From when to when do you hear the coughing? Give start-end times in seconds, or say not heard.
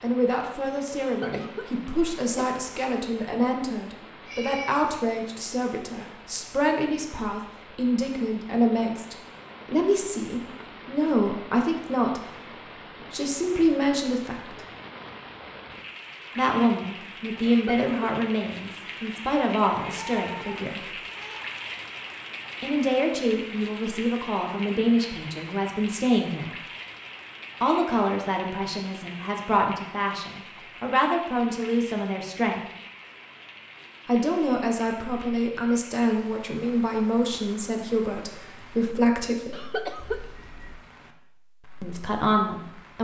1.0-2.5, 17.4-17.9, 39.5-40.5.